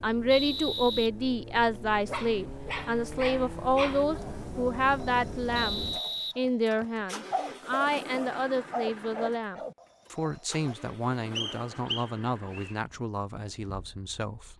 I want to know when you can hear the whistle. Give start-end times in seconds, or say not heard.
0.3-1.8, 5.5-7.0, 11.3-12.8.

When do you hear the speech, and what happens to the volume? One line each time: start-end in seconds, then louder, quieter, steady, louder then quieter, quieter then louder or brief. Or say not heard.
0.0-14.5 quieter.